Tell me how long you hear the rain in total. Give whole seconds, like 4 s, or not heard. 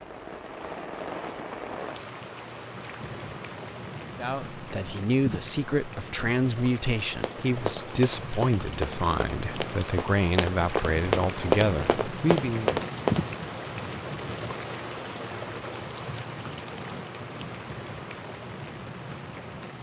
20 s.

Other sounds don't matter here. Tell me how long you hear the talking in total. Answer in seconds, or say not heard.
9 s.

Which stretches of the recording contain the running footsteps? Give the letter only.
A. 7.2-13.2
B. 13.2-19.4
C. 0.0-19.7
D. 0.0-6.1
A.